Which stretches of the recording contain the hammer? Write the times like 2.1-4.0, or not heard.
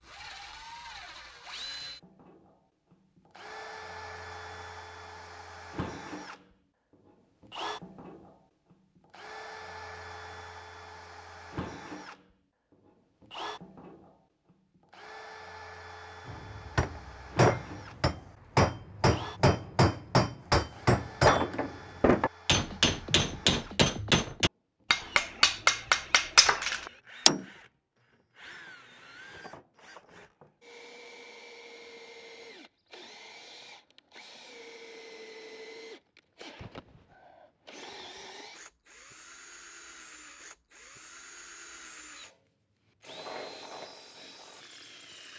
16.2-27.4.